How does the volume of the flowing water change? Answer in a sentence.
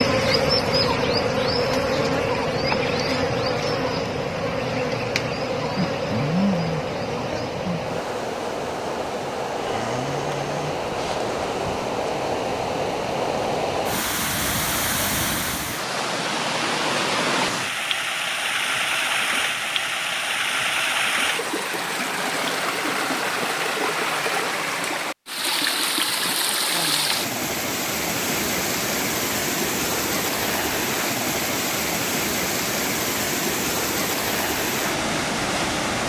The volume of the flowing water goes up.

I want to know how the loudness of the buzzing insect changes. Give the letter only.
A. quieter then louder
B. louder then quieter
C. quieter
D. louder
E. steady
C.